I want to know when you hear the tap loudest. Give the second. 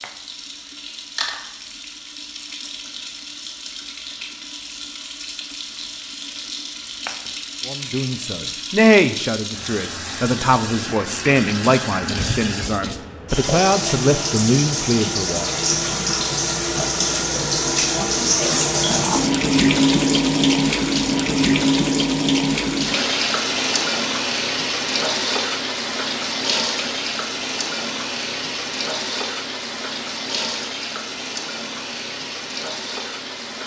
20 s.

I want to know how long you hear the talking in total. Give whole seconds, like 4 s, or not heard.
8 s.